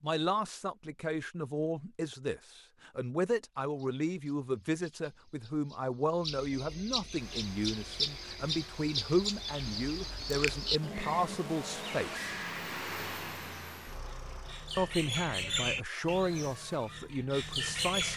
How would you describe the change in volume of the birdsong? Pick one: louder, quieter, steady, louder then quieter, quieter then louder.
louder.